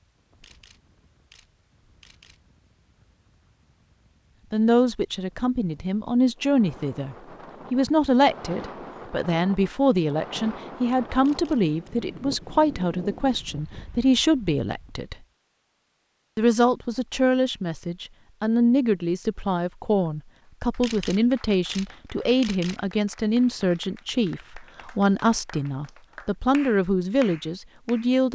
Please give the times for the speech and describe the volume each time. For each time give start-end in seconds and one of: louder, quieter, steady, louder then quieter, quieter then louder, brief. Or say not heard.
4.5-15.2 steady
16.4-28.3 steady.